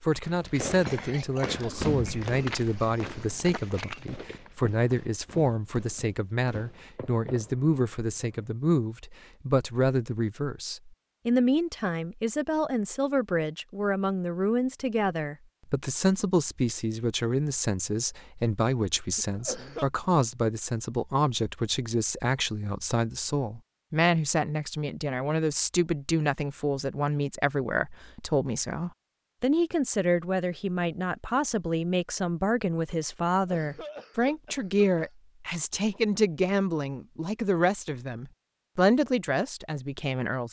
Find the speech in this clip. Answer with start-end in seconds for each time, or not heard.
0.0-40.4.